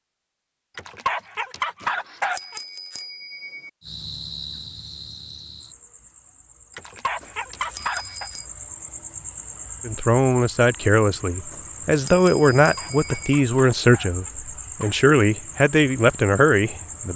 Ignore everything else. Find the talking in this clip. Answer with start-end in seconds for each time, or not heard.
9.8-17.1.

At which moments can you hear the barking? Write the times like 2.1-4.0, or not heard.
0.8-2.6, 6.8-8.3, 12.6-15.0.